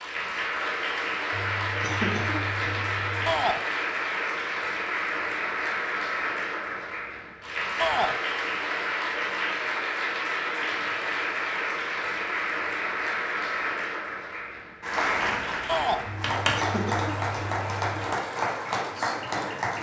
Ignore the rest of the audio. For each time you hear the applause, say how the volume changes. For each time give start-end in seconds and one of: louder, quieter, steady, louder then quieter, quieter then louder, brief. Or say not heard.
0.0-19.7 steady.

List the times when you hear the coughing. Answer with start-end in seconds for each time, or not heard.
1.3-3.4, 16.1-18.0.